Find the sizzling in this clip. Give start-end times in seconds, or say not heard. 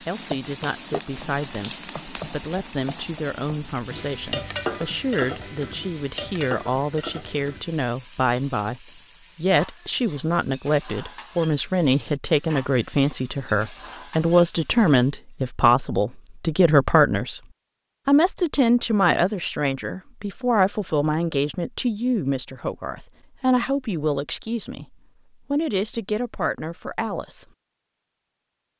0.0-15.2.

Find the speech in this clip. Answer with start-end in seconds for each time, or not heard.
0.1-17.4, 18.1-27.4.